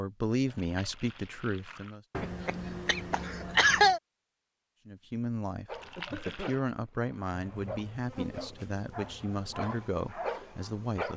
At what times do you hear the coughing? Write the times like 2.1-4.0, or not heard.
2.1-4.0, 6.0-6.5.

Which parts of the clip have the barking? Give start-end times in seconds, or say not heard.
5.7-11.1.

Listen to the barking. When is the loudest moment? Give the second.
10 s.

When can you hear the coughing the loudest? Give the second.
4 s.